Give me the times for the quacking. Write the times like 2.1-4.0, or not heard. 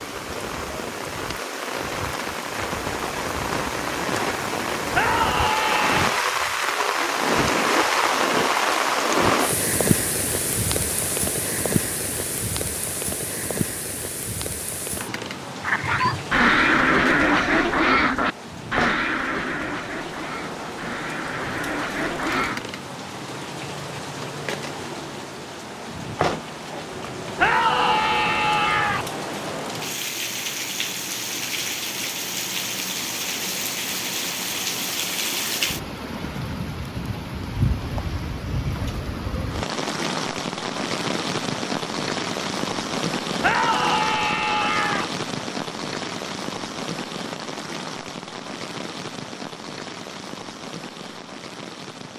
15.6-22.6.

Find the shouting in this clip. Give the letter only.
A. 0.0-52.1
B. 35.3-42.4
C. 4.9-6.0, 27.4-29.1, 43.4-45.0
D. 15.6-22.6
C.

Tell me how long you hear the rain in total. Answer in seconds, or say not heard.
52 s.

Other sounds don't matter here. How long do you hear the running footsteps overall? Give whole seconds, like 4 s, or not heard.
not heard.